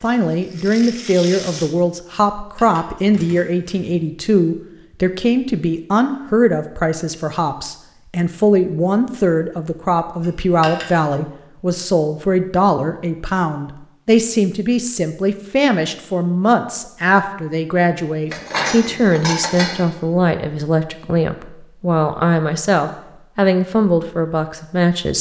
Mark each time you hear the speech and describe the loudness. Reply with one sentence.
You can hear the speech from 0.0 to 25.1 s, at a steady volume.